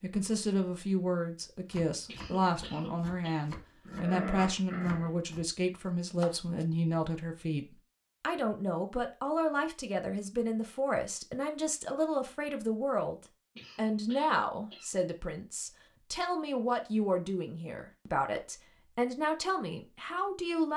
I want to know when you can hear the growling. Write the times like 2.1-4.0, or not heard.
3.9-5.3.